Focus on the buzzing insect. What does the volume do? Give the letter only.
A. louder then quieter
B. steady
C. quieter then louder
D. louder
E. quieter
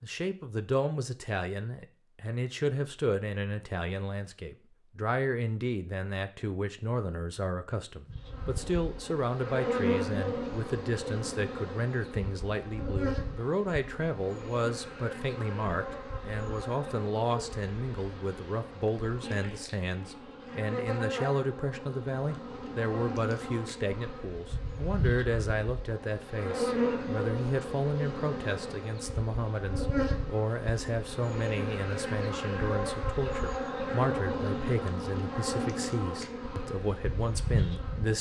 C.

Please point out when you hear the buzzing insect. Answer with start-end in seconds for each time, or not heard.
8.1-38.1.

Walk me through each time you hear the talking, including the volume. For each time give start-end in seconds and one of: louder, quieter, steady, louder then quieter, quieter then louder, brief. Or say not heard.
0.0-38.1 steady.